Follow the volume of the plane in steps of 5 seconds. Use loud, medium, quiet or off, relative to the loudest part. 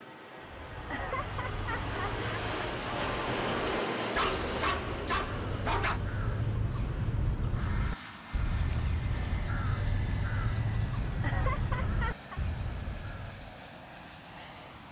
loud, medium, medium.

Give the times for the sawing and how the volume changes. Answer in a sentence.
The sawing can't be heard in this clip.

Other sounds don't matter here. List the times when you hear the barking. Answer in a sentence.
You can hear the barking from 4.1 to 6.0 s.